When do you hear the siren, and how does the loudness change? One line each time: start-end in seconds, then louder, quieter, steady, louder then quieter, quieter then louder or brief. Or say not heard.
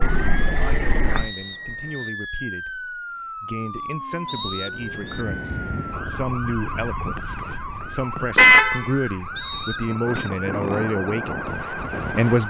0.1-12.4 steady.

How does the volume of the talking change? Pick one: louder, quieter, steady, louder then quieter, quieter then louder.
louder.